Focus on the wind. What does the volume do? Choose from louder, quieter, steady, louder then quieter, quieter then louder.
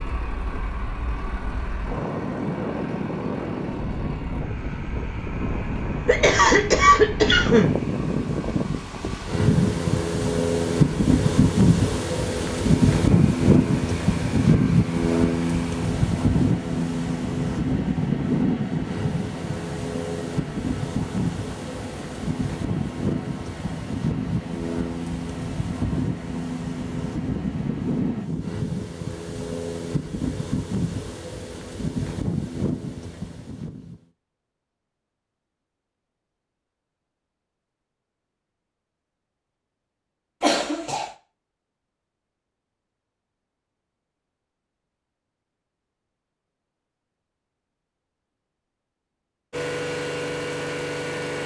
louder then quieter.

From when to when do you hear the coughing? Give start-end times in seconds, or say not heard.
6.0-7.8, 40.4-41.1.